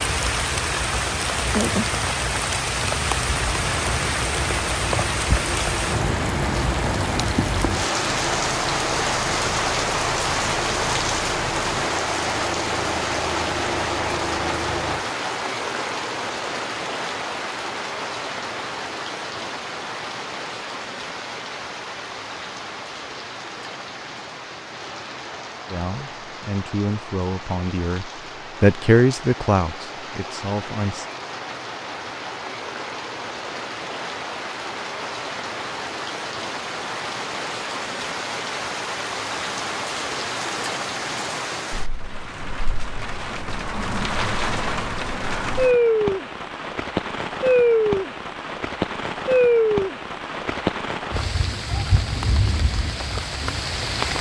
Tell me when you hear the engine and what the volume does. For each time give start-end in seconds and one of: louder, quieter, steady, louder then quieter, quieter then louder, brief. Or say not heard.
3.5-15.1 steady.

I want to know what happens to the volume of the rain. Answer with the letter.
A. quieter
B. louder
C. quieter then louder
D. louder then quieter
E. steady
C.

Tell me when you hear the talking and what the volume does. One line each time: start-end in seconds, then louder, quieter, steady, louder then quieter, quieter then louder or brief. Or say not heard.
25.7-31.1 louder then quieter.